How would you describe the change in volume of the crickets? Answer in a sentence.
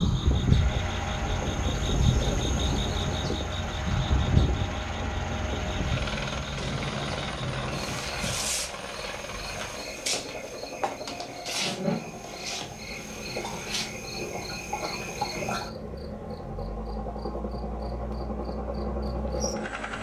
The loudness of the crickets goes down.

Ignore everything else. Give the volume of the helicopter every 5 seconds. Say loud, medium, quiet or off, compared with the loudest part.
loud, loud, medium, loud.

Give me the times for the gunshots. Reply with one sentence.
The gunshots can be heard from 6.5 to 8.0 s.